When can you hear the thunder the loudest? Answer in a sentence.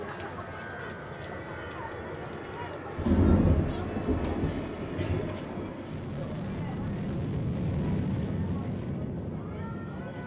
The loudest moment of the thunder is at 3 seconds.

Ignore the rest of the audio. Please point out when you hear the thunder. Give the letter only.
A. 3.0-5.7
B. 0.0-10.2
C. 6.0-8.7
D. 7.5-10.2
A.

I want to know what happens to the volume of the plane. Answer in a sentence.
The volume of the plane goes up.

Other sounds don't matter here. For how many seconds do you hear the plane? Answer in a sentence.
You can hear the plane for 10 seconds altogether.